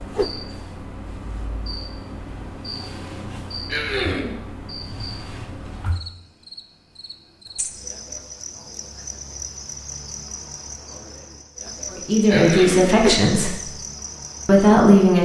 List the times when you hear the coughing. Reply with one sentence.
You can hear the coughing from 3.7 to 4.3 s and from 12.2 to 12.9 s.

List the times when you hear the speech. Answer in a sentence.
You can hear the speech from 11.9 to 13.6 s and from 14.4 to 15.2 s.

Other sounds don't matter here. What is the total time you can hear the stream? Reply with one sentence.
The stream can't be heard in this clip.